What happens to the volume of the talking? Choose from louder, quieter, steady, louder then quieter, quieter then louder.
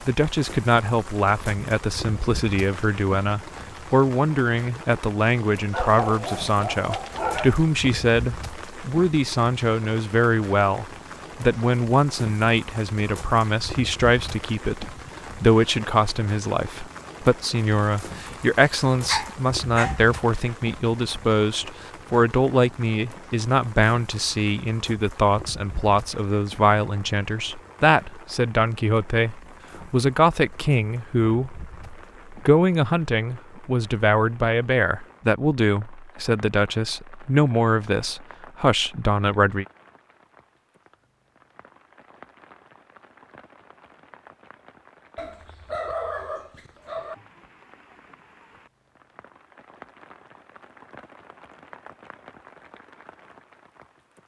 steady.